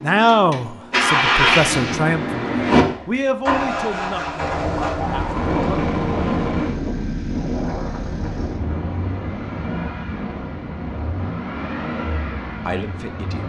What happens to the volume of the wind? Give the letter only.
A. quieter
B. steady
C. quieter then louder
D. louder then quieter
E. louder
A.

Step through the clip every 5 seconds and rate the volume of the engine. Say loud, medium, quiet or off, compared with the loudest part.
loud, medium, medium.